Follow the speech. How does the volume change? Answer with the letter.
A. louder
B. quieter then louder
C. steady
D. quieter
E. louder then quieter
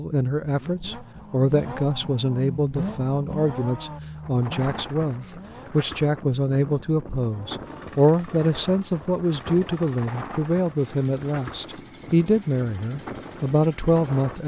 C.